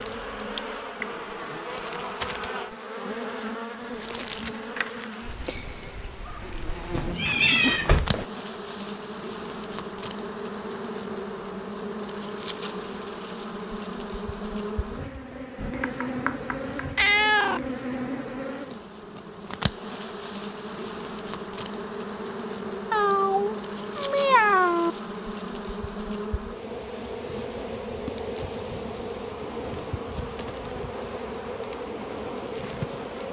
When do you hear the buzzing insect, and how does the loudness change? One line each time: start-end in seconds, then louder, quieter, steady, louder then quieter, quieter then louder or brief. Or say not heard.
0.0-33.2 steady.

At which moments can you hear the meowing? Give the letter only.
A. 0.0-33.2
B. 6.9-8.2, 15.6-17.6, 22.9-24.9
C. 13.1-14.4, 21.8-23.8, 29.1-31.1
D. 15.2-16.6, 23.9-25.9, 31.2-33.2
B.